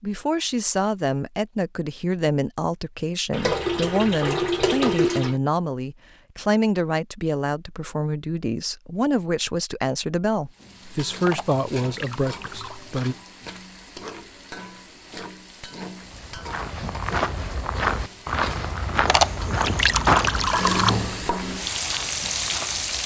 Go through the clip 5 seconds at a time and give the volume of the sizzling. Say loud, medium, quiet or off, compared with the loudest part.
off, off, quiet, quiet, loud.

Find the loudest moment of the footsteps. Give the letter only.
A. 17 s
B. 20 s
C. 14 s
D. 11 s
B.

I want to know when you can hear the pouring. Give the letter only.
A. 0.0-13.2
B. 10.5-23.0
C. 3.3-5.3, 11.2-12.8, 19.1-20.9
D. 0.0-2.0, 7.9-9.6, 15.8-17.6
C.